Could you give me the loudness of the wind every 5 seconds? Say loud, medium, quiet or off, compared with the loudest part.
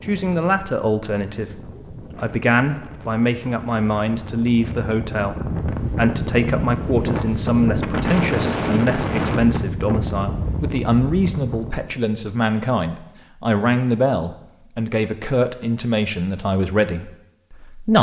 quiet, loud, medium, off.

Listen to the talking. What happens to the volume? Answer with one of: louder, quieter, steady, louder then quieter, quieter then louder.
steady.